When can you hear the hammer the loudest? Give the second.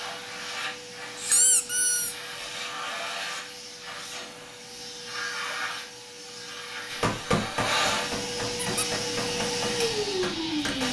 7 s.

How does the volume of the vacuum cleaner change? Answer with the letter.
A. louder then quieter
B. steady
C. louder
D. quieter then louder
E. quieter
C.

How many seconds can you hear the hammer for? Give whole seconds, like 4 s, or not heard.
4 s.